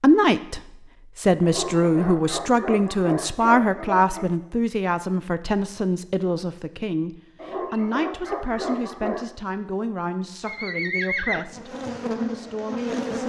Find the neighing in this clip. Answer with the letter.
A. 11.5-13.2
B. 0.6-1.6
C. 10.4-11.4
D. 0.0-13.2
C.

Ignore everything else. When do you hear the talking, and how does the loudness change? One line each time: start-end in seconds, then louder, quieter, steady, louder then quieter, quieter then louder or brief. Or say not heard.
0.0-13.2 quieter.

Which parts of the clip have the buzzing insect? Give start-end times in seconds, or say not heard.
11.5-13.2.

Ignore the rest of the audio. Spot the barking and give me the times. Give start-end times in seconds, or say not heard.
1.4-4.3, 7.3-9.2.